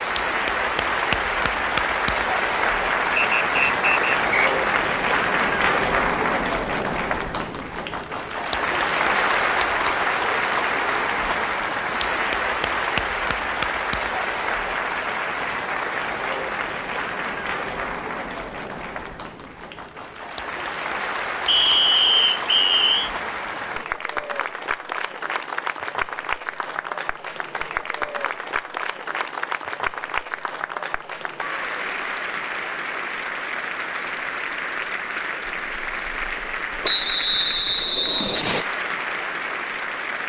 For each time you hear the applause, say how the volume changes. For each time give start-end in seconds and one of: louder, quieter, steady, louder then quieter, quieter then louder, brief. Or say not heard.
0.0-40.2 quieter.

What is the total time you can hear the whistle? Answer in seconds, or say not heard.
5 s.